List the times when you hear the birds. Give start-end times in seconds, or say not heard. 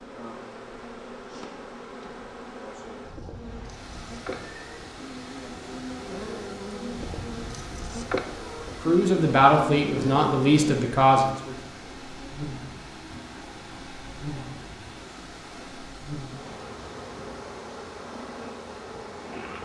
not heard.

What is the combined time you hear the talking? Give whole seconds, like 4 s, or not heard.
3 s.